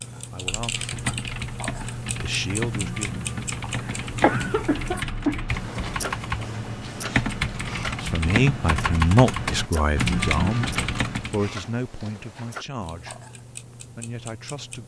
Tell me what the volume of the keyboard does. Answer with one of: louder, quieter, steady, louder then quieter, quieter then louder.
louder.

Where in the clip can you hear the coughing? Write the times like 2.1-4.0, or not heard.
3.8-5.5.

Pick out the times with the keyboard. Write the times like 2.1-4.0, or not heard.
0.6-11.5.